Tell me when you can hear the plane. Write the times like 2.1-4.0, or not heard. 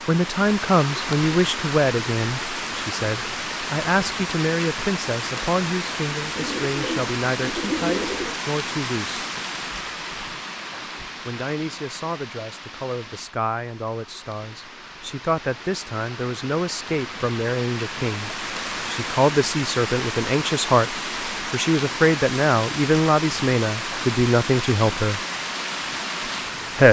not heard.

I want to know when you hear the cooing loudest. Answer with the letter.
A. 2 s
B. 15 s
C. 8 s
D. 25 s
C.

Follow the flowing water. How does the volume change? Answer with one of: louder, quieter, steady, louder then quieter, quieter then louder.
quieter then louder.